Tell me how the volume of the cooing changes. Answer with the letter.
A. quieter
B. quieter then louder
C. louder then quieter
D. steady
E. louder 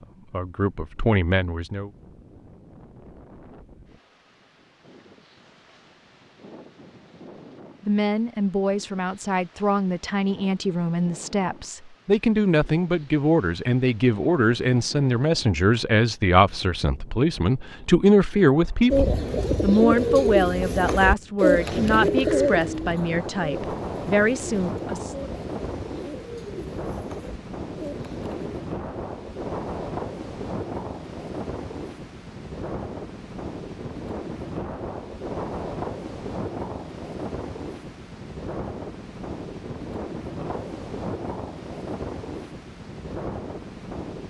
A.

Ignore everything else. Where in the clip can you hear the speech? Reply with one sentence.
The speech can be heard from 0.0 to 1.9 s and from 7.8 to 25.2 s.